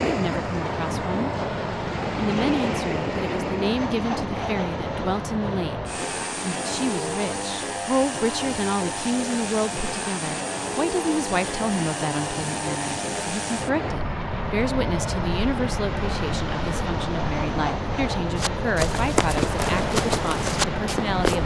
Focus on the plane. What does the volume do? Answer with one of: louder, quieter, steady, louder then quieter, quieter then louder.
steady.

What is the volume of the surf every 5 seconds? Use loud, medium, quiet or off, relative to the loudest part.
loud, medium, medium, loud, loud.